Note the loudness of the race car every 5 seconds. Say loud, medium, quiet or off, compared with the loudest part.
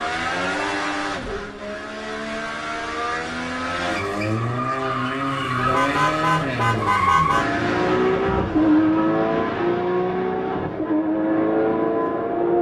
medium, loud, loud.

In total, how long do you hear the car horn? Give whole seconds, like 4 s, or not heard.
2 s.